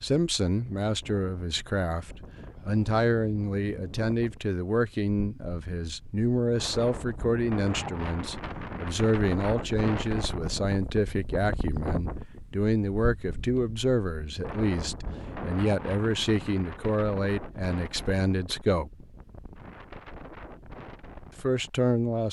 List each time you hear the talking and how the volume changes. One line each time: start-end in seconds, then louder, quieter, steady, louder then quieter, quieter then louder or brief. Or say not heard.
0.0-18.9 steady
21.4-22.2 brief.